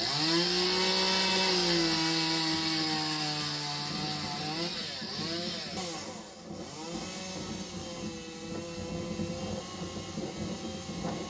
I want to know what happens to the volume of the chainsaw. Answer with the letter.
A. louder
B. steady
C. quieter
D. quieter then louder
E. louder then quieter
C.